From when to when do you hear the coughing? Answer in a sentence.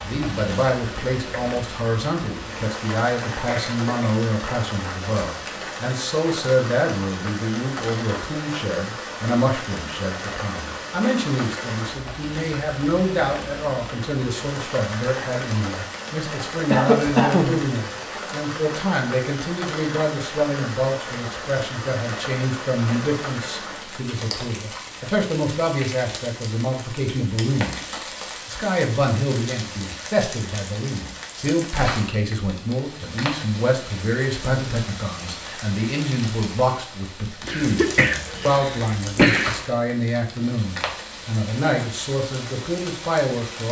You can hear the coughing from 3.5 to 4.2 s, from 16.7 to 17.6 s and from 37.4 to 39.5 s.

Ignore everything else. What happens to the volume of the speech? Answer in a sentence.
The loudness of the speech stays about the same.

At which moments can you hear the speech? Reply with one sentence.
You can hear the speech from 0.0 to 43.6 s.